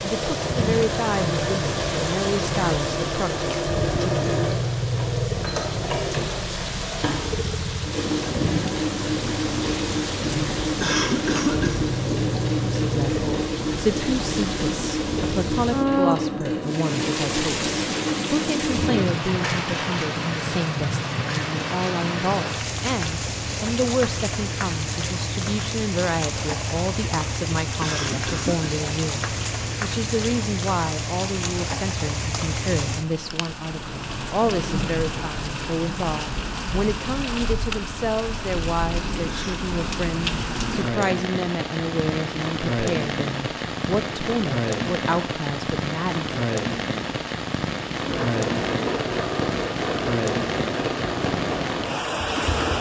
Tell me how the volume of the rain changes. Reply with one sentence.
The loudness of the rain stays about the same.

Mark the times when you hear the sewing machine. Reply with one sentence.
You can hear the sewing machine from 0.0 to 20.1 s and from 48.0 to 52.7 s.